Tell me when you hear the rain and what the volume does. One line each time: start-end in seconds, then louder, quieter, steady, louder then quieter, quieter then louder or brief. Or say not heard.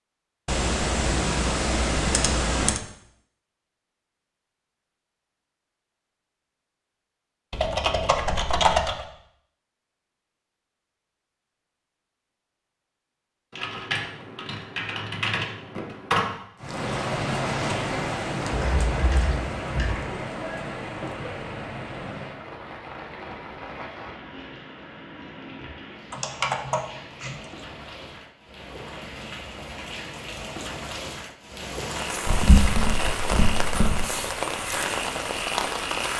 16.6-36.1 quieter then louder.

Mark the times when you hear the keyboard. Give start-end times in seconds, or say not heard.
0.5-2.8, 7.5-9.1, 13.5-16.4, 18.5-20.1, 26.1-27.4, 32.2-34.0.